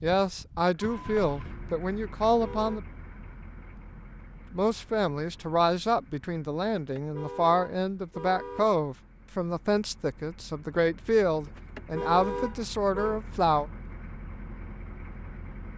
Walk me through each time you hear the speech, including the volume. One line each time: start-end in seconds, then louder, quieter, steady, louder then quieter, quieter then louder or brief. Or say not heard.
0.0-2.8 brief
4.5-13.7 steady.